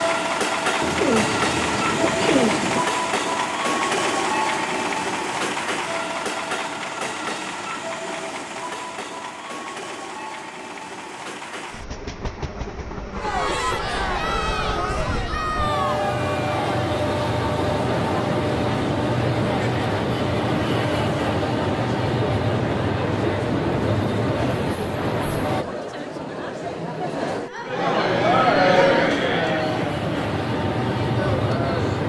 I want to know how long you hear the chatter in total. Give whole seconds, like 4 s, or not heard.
19 s.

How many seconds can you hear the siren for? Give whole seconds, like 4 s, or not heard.
not heard.